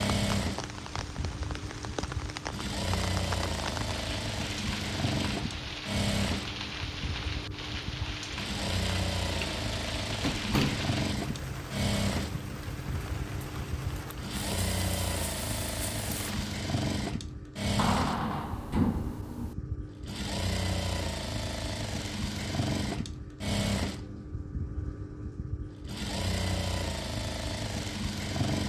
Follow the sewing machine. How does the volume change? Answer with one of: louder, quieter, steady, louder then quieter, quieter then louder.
steady.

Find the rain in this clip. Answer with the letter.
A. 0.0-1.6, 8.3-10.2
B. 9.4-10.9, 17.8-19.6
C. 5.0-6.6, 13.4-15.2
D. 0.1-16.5
D.